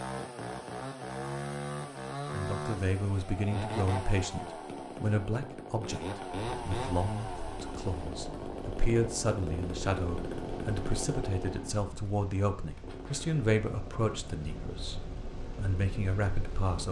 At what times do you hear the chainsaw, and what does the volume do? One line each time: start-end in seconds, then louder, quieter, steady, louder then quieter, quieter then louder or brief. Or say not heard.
0.0-16.7 quieter.